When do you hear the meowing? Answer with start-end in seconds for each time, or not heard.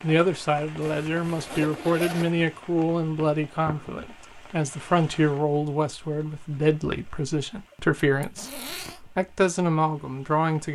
not heard.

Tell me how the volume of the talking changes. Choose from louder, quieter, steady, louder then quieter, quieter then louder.
steady.